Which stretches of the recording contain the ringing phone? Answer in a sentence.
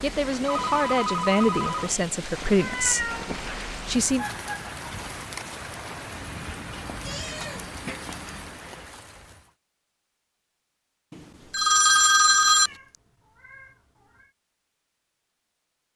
The ringing phone can be heard from 0.5 to 2.0 s, from 6.1 to 8.6 s and from 11.5 to 12.7 s.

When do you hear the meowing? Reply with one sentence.
The meowing can be heard from 2.5 to 3.6 s, from 7.0 to 7.7 s and from 12.5 to 14.3 s.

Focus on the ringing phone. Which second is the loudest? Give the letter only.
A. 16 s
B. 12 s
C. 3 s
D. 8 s
B.